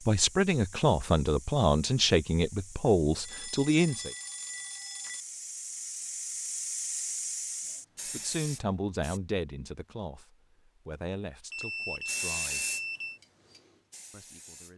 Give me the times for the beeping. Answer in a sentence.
You can hear the beeping from 3.2 to 5.2 s and from 11.5 to 13.2 s.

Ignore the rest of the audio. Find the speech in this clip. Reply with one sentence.
You can hear the speech from 0.1 to 4.1 s, from 8.1 to 12.8 s and from 14.1 to 14.7 s.